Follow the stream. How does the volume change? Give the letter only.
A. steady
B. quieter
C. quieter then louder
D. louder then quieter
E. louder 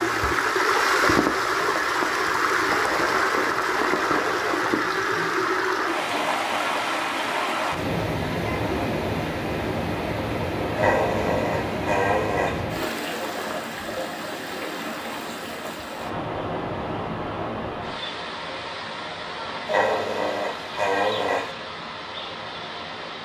B.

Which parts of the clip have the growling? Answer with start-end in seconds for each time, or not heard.
2.9-4.6, 10.8-12.6, 19.6-21.5.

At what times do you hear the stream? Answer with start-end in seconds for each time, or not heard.
0.0-23.1.